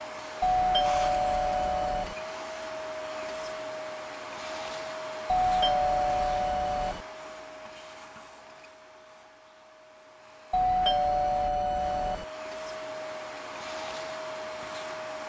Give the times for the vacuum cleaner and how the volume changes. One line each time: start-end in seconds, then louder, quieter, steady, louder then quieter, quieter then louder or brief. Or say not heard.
0.0-15.2 quieter then louder.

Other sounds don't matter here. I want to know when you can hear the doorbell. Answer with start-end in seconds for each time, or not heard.
0.4-2.1, 5.2-7.0, 10.5-12.2.